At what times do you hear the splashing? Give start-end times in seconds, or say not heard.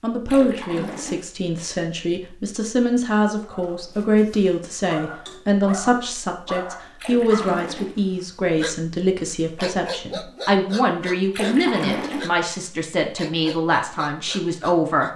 0.2-1.2, 7.0-8.0, 11.3-12.3.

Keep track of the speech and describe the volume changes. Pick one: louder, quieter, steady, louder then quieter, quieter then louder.
steady.